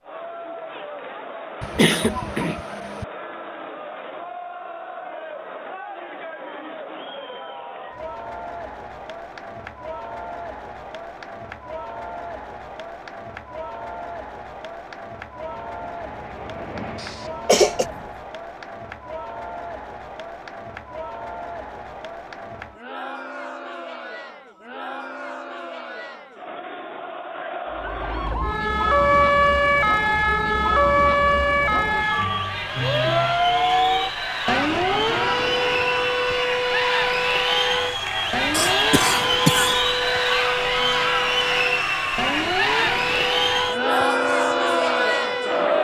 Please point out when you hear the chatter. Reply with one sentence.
You can hear the chatter from 0.0 to 45.8 s.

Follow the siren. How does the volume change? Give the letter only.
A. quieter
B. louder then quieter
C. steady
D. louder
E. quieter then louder
A.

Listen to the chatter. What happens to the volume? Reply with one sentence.
The loudness of the chatter goes up.